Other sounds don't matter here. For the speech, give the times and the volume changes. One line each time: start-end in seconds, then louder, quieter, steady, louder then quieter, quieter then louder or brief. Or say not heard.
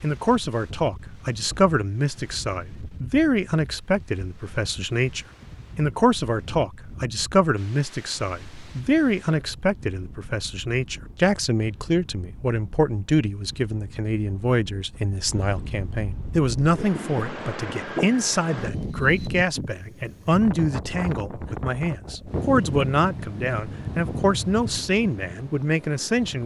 0.0-26.4 steady.